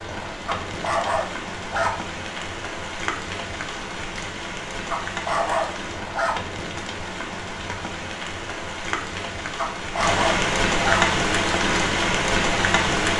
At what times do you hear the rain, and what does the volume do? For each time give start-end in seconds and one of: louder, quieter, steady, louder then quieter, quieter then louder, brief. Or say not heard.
0.0-13.1 louder.